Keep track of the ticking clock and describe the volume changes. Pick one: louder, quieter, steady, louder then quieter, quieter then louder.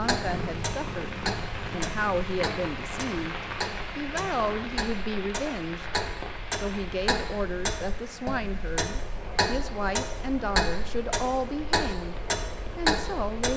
louder.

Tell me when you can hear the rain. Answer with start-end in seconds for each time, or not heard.
0.0-13.5.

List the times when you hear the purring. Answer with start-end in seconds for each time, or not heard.
0.0-4.8.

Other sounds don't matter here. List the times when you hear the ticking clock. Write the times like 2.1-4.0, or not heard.
0.0-13.5.